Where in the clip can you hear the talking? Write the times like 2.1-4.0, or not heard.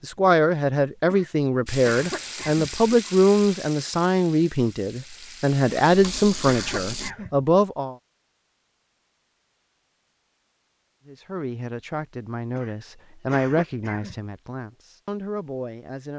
0.0-8.0, 11.1-16.1.